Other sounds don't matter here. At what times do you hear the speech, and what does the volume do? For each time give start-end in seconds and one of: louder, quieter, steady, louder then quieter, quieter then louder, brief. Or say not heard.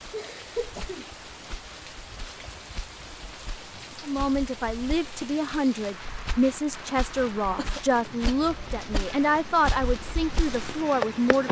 4.0-11.4 steady.